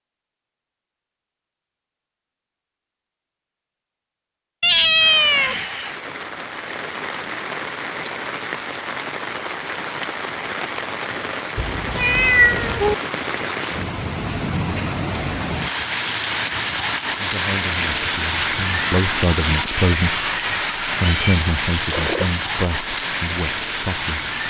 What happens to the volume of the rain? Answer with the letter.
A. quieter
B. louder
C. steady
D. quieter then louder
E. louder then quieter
B.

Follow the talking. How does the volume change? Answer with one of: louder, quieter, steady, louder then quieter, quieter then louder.
louder then quieter.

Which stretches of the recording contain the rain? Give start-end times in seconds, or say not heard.
5.0-24.4.